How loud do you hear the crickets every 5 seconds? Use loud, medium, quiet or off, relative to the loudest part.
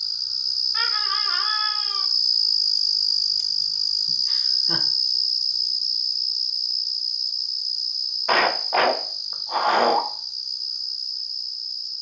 loud, loud, medium.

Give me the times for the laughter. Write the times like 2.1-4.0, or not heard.
0.7-2.0, 4.0-4.8, 8.2-10.0.